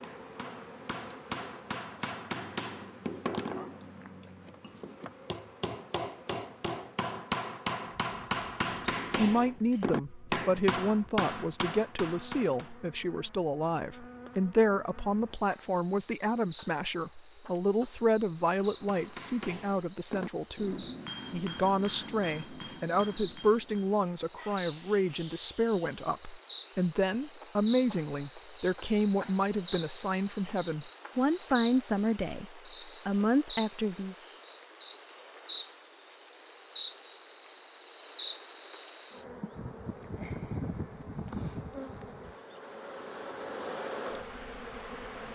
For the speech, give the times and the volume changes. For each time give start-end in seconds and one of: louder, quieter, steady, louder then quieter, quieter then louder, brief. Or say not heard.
8.7-34.2 steady.